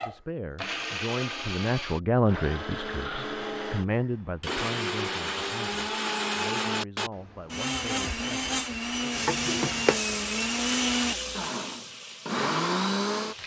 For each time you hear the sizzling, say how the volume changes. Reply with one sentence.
You can hear the sizzling from 9.1 to 13.4 s, getting quieter.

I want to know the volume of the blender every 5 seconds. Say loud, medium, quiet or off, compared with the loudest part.
medium, loud, loud.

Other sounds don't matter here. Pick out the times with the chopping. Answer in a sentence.
The chopping can't be heard in this clip.